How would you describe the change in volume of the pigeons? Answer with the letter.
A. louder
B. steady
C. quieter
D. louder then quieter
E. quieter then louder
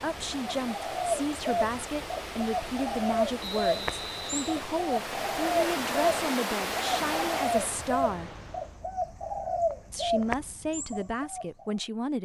B.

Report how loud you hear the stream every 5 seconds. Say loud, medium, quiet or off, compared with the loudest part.
medium, loud, off.